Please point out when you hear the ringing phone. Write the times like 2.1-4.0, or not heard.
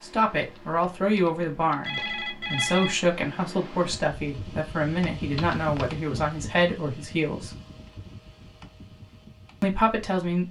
0.4-3.0, 5.3-6.0.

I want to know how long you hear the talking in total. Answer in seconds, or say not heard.
8 s.